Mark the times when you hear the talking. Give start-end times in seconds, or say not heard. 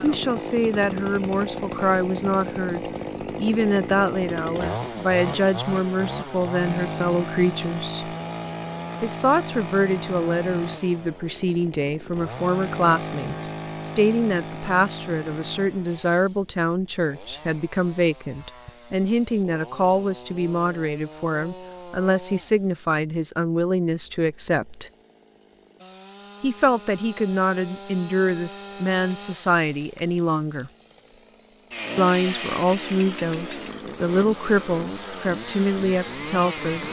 0.0-8.2, 9.0-24.9, 26.4-30.7, 31.9-36.8.